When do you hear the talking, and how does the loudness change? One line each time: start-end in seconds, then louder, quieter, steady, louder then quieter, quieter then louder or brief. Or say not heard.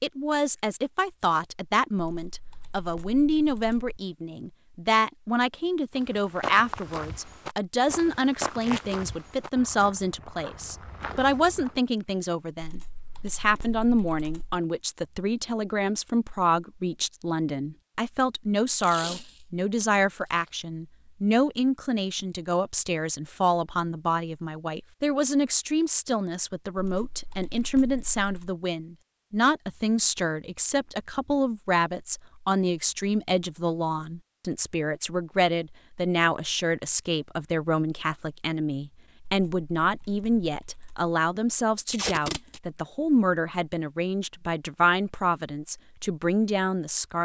0.0-47.1 steady.